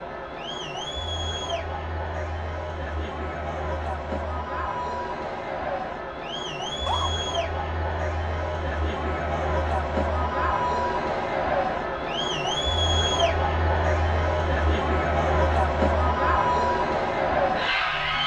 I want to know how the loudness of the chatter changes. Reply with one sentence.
The volume of the chatter goes up.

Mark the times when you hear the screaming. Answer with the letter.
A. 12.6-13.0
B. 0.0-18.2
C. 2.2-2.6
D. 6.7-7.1
D.